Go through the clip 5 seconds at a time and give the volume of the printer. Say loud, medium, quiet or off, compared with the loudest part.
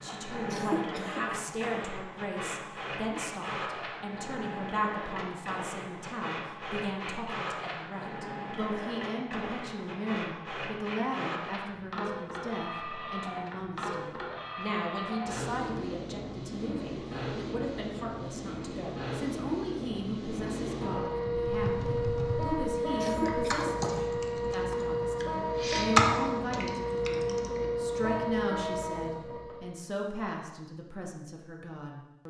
medium, medium, medium, medium, loud, loud, off.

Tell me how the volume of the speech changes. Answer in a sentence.
The volume of the speech stays about the same.